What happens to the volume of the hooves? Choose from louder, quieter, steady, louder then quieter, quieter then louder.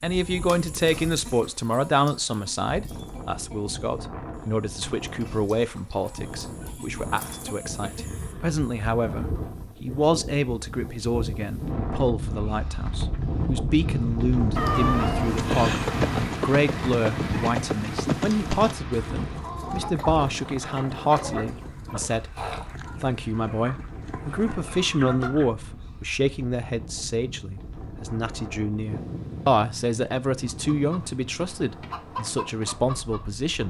quieter.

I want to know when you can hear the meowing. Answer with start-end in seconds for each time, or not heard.
14.6-16.4.